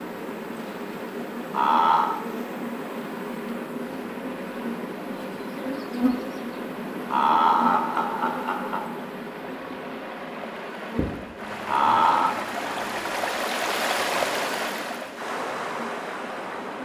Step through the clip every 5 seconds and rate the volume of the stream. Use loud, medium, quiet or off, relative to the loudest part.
quiet, quiet, loud, loud.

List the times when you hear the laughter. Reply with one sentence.
The laughter can be heard from 1.5 to 2.1 s, from 7.1 to 8.9 s and from 11.7 to 12.3 s.